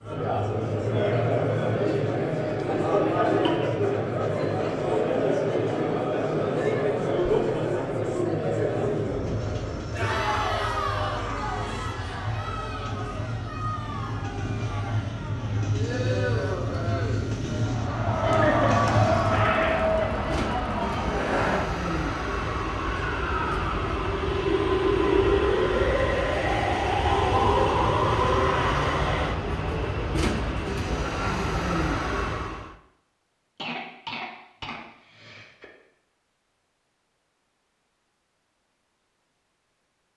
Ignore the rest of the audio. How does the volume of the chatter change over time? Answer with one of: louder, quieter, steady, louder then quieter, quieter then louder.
quieter then louder.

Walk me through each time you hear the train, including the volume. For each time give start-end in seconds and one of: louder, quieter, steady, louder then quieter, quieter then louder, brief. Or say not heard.
9.0-32.8 louder.